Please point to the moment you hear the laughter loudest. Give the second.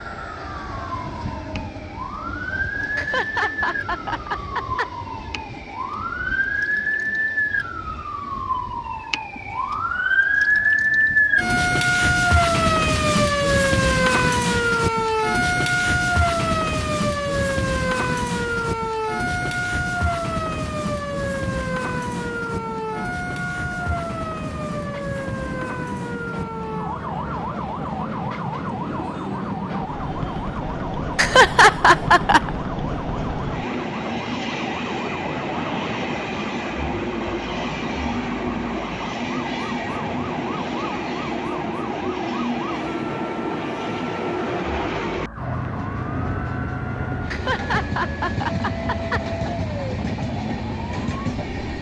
32 s.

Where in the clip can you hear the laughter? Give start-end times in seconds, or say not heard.
3.0-4.9, 31.1-32.5, 47.3-49.2.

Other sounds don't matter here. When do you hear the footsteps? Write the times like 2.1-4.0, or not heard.
not heard.